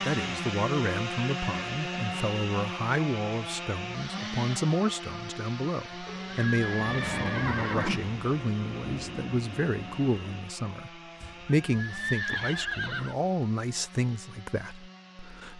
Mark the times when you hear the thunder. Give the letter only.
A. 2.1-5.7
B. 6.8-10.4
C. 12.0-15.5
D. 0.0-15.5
B.